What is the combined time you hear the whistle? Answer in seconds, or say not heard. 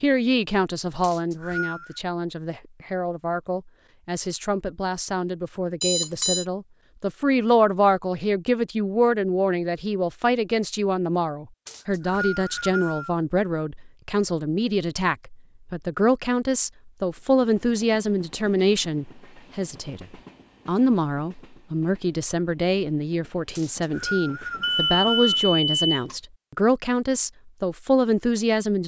4 s.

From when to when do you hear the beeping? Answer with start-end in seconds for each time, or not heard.
5.8-6.5, 24.6-26.1.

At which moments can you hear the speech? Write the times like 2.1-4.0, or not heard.
0.0-20.1, 20.6-28.8.